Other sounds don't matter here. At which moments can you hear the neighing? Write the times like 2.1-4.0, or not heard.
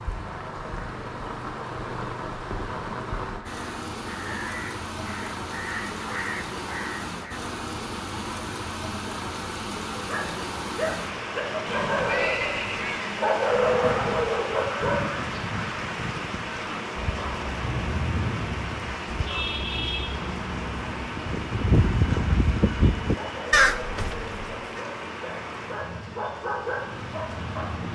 11.7-13.1.